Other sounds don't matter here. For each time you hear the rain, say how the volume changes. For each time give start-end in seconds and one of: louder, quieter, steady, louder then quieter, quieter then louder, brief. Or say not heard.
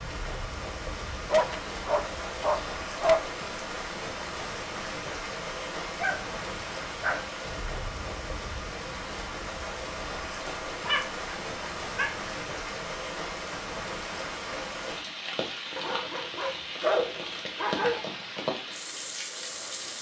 0.0-19.9 steady.